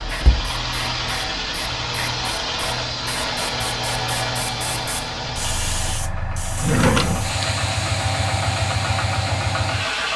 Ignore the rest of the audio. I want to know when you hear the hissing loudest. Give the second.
8 s.